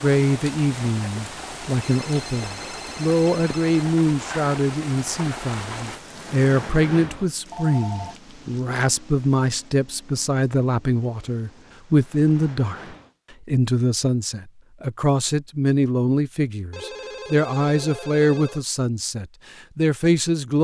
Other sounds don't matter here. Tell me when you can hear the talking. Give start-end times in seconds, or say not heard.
0.0-20.6.